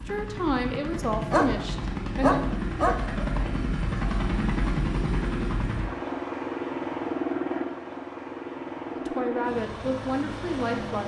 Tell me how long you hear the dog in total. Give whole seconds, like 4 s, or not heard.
2 s.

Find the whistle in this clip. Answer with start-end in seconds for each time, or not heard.
not heard.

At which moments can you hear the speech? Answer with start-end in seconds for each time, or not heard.
0.0-2.4, 8.9-11.0.